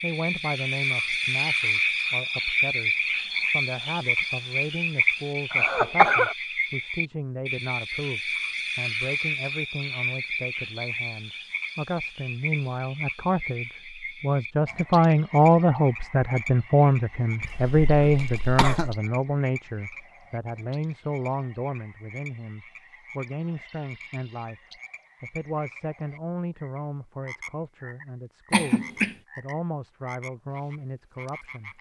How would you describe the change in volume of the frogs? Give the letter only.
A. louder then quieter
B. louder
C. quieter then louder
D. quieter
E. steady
D.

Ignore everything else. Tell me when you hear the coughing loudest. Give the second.
6 s.